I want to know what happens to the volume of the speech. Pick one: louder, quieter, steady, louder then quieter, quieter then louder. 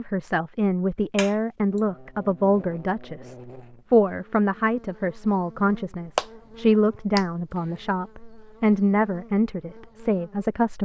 steady.